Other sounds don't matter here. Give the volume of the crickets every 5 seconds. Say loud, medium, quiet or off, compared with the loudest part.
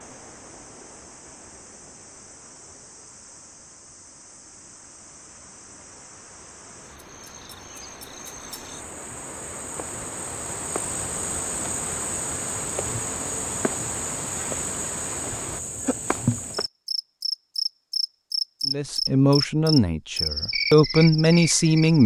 quiet, quiet, medium, loud, loud.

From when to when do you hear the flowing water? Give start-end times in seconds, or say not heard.
0.0-15.6.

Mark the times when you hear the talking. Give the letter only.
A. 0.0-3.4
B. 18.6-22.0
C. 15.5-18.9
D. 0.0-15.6
B.